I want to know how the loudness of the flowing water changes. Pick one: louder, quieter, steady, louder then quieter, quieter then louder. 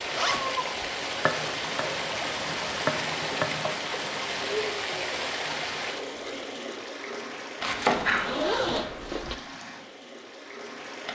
quieter.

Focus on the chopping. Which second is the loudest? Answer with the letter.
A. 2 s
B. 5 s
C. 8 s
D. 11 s
C.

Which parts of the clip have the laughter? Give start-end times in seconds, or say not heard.
not heard.